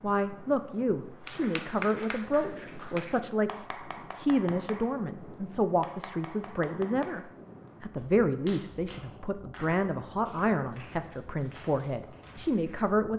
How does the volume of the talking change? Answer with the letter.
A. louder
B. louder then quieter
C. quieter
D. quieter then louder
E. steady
E.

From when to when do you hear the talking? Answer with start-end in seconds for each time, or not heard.
0.0-13.1.